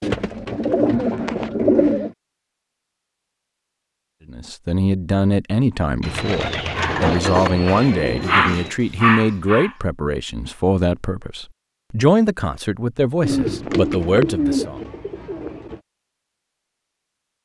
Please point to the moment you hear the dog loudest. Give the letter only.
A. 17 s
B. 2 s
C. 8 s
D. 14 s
C.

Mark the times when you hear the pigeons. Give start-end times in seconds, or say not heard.
0.0-2.1, 6.0-8.8, 13.2-15.8.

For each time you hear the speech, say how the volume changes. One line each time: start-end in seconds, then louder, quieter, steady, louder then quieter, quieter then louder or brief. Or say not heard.
4.2-14.8 steady.